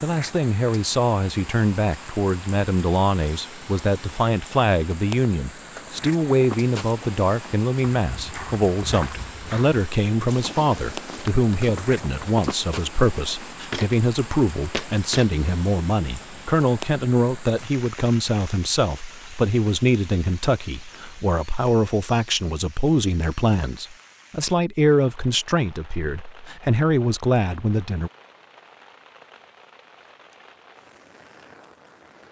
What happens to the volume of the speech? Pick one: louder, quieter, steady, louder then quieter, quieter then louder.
steady.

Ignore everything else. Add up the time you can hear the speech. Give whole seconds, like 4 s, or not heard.
28 s.